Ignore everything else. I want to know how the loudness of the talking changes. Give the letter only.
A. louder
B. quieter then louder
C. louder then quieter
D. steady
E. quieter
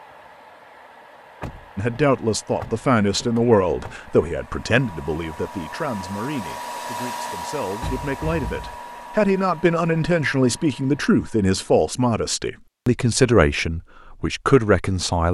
B.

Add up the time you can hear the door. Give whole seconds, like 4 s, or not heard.
3 s.